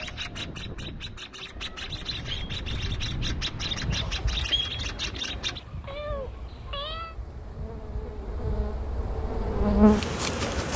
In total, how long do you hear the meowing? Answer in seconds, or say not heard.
2 s.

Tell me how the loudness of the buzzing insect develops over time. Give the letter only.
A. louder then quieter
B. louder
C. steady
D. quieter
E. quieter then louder
B.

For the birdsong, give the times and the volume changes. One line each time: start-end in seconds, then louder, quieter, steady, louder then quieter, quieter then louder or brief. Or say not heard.
0.0-5.6 louder.